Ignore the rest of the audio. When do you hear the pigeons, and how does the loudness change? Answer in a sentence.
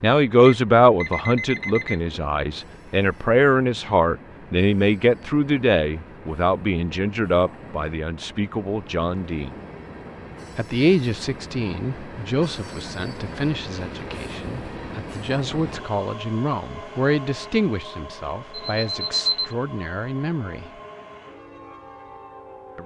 The pigeons can't be heard in this clip.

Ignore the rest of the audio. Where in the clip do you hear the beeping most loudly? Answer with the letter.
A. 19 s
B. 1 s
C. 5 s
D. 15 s
A.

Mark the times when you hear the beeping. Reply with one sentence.
The beeping can be heard from 0.5 to 2.0 s and from 18.5 to 19.6 s.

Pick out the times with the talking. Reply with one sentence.
The talking can be heard from 0.0 to 9.5 s and from 10.6 to 20.7 s.